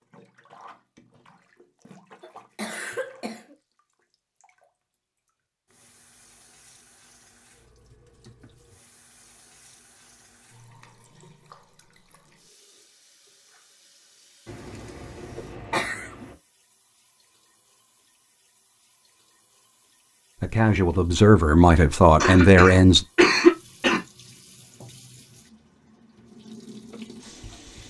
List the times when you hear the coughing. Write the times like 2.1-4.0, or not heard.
2.2-3.5, 14.4-16.4, 22.2-24.0.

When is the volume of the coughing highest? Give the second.
23 s.